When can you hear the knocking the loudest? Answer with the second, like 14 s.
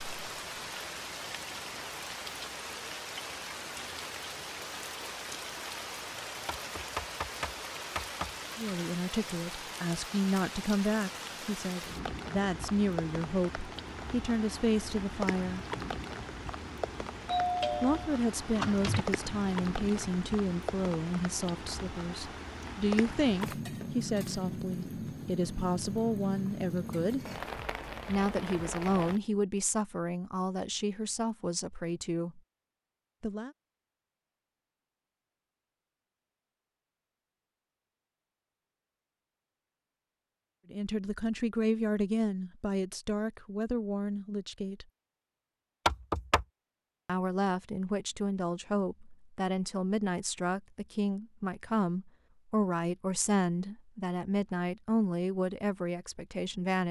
46 s.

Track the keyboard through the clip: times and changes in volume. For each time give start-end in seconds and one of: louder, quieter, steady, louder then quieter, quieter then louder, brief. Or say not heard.
not heard.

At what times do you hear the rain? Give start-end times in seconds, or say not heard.
0.0-29.2.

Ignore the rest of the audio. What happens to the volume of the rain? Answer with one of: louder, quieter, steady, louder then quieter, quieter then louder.
steady.